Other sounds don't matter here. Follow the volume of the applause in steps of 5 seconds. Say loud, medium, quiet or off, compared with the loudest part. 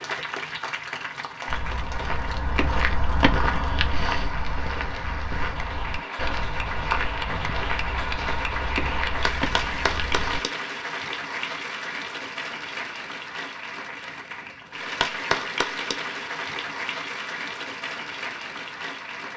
medium, loud, loud, loud.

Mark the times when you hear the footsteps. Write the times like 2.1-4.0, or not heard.
1.4-10.4.